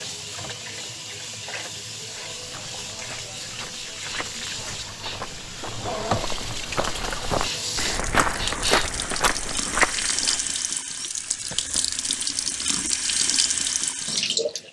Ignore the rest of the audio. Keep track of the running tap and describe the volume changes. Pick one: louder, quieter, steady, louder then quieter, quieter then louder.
louder.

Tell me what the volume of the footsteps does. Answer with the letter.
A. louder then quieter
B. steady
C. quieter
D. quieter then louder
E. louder
E.